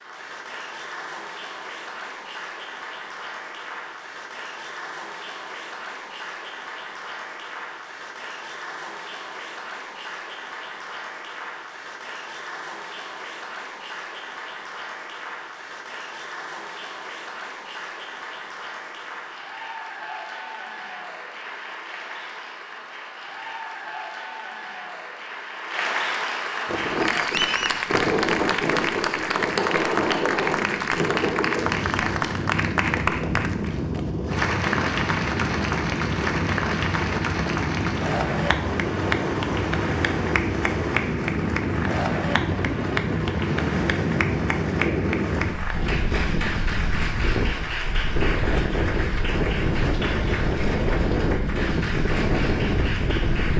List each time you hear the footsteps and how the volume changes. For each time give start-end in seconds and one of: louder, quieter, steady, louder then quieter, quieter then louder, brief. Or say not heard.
not heard.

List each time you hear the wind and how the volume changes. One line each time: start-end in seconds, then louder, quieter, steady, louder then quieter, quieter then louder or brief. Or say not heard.
26.6-53.5 steady.